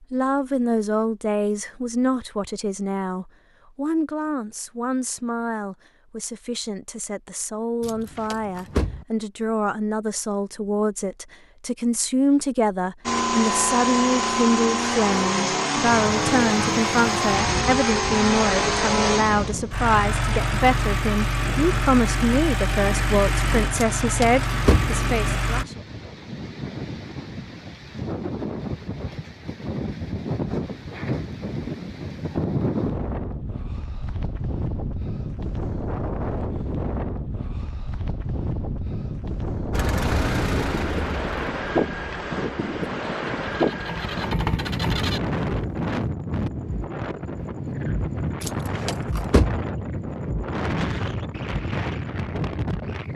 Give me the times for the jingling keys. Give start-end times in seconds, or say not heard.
7.8-9.1, 24.0-24.9, 48.4-49.6.